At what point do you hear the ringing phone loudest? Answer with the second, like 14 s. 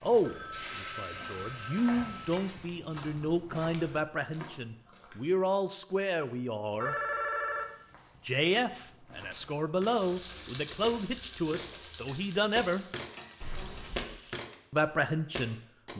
7 s.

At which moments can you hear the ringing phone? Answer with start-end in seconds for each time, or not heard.
0.2-2.4, 6.2-7.7, 13.4-14.1.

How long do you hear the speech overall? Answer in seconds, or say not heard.
13 s.